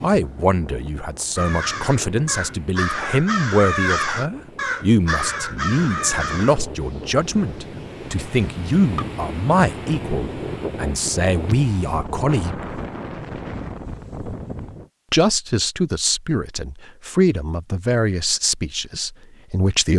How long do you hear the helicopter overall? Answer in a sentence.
You can't hear the helicopter here.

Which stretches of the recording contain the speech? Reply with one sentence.
The speech can be heard from 0.0 to 12.7 s and from 15.1 to 19.9 s.